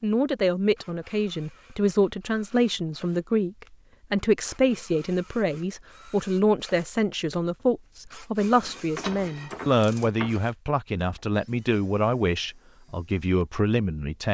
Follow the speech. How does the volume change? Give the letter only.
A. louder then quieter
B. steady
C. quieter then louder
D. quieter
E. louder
B.